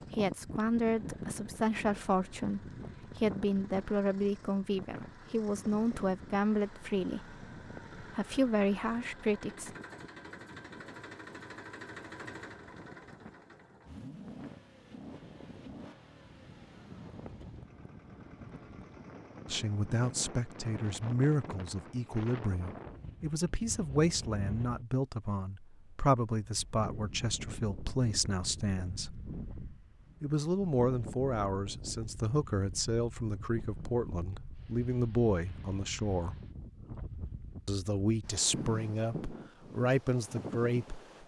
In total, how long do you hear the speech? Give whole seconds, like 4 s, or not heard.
28 s.